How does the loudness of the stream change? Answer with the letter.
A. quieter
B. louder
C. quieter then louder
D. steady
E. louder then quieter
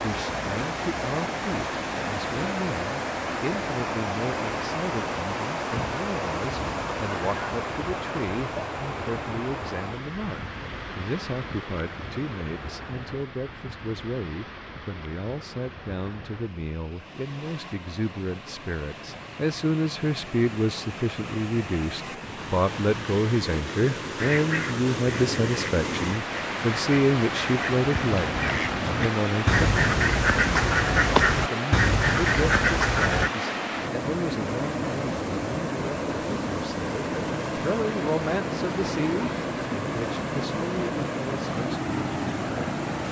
C.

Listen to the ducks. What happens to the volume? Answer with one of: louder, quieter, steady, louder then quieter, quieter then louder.
louder.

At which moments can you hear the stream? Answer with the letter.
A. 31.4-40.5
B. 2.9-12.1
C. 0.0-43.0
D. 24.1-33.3
C.